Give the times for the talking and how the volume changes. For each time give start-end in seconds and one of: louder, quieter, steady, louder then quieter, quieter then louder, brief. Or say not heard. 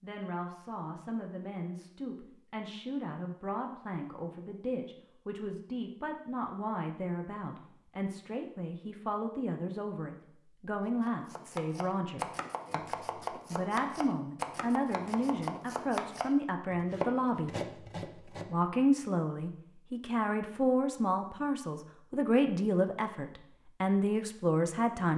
0.0-25.1 louder.